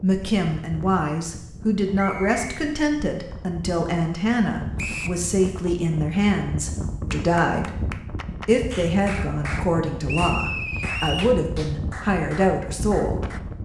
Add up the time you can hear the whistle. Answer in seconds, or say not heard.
2 s.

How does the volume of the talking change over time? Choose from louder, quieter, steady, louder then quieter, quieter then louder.
steady.